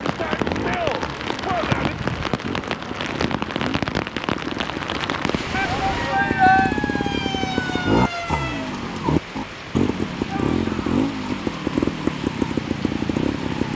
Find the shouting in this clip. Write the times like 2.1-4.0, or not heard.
0.1-1.9, 5.5-6.8, 10.2-10.9.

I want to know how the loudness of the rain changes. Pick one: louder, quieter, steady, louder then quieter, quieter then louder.
quieter.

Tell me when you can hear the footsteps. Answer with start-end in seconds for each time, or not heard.
not heard.